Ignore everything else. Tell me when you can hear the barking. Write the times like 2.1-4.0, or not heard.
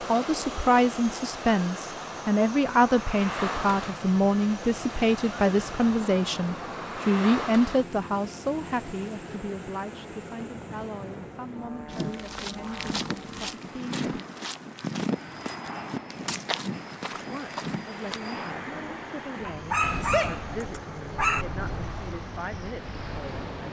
19.4-21.4.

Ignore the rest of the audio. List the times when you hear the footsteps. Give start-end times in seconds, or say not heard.
11.9-18.2.